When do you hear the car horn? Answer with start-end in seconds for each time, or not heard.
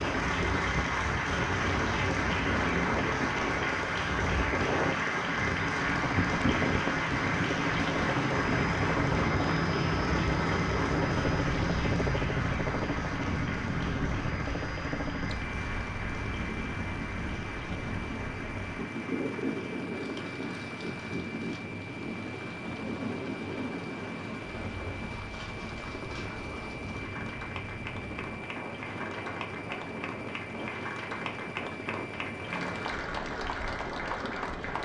not heard.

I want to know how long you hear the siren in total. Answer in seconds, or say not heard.
not heard.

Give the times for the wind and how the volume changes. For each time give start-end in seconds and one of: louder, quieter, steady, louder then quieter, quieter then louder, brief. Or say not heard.
0.0-34.7 quieter.